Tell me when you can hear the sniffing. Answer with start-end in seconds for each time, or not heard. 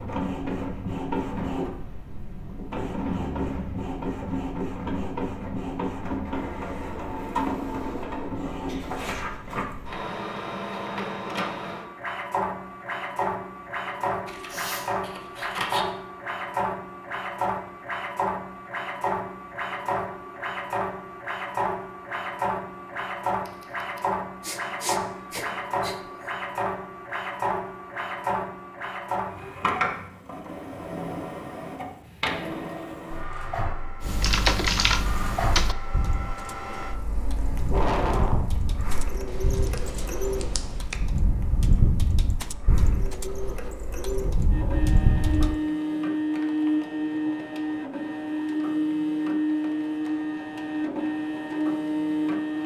14.5-14.9, 24.4-25.9, 37.7-38.5.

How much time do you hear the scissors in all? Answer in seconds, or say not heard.
4 s.